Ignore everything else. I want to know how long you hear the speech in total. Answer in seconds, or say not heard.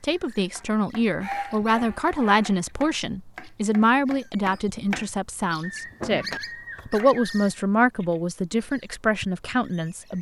10 s.